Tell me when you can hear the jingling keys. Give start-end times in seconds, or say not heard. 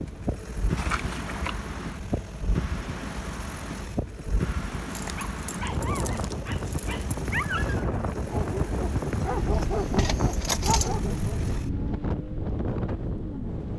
0.8-1.6, 4.8-7.0, 9.5-10.9.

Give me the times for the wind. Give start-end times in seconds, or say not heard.
0.0-13.7.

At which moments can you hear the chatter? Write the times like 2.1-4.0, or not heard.
not heard.